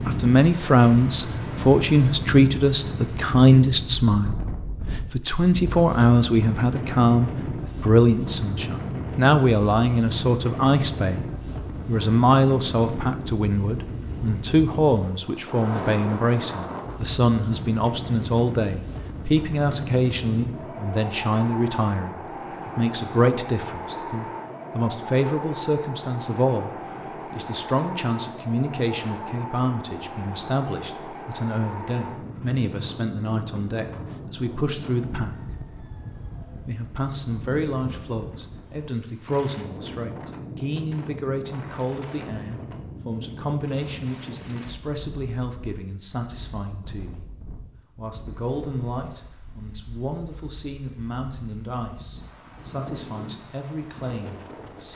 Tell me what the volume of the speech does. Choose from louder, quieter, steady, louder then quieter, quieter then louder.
quieter.